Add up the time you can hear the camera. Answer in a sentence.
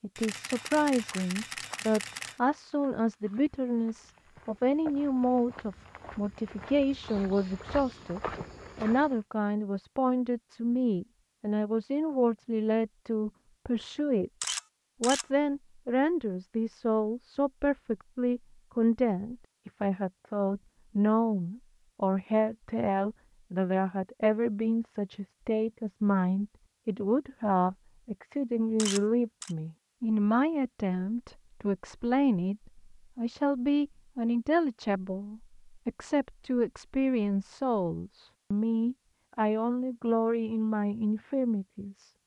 You can hear the camera for 4 seconds altogether.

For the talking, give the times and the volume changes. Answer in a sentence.
You can hear the talking from 0.0 to 42.1 s, at a steady volume.